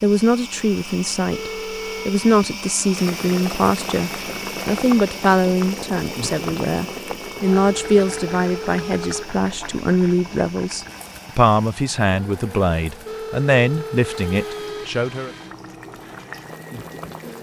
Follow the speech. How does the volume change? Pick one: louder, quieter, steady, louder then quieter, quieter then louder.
steady.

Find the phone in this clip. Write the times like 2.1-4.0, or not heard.
1.2-2.2, 7.5-9.2, 13.0-14.8.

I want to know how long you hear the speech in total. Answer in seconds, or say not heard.
15 s.